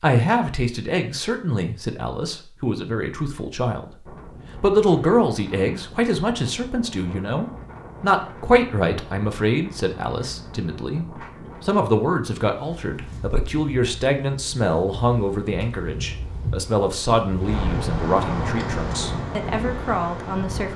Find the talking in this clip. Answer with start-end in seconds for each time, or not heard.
0.0-20.7.